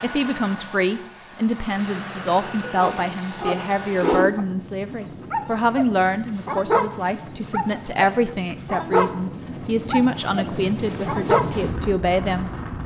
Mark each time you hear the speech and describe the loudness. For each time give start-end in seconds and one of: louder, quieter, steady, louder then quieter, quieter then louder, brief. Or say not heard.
0.0-12.8 steady.